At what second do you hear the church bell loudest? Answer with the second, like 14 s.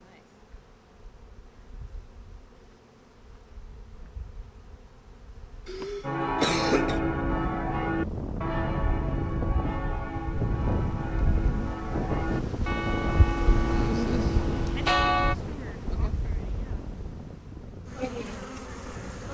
15 s.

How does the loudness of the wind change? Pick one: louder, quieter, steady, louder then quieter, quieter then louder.
quieter.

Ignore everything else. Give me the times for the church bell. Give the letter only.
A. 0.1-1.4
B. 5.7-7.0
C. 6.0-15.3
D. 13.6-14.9
C.